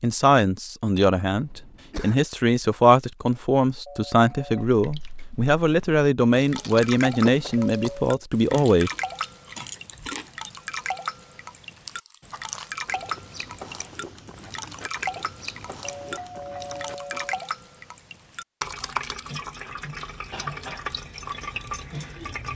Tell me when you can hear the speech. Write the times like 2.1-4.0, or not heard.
0.0-8.9.